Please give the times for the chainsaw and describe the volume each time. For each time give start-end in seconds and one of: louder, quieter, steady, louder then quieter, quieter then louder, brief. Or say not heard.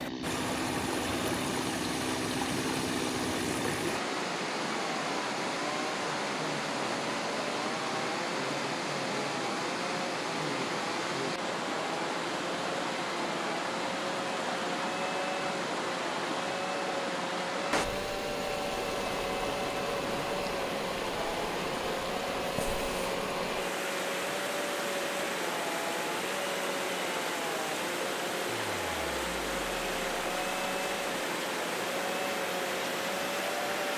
0.0-33.9 steady.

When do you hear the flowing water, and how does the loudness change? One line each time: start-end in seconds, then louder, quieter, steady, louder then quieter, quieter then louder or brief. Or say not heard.
0.0-33.9 steady.